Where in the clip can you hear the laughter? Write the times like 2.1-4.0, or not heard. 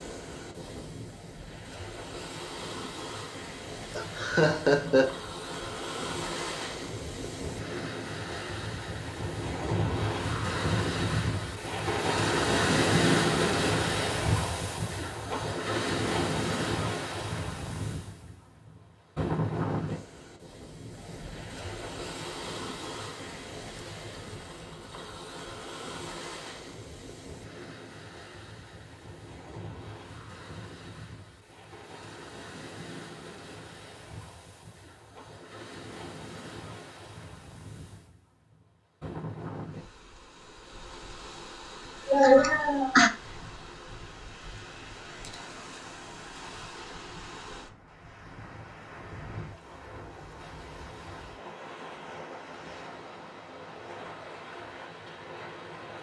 4.0-5.1, 42.0-43.1.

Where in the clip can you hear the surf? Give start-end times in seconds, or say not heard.
0.0-55.9.